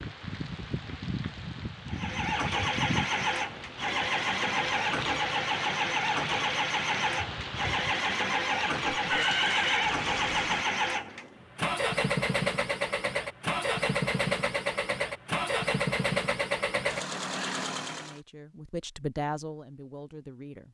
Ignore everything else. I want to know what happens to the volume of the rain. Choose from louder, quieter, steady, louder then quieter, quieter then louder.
steady.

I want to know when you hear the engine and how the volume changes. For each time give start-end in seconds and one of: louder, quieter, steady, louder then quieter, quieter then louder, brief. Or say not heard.
1.9-18.2 steady.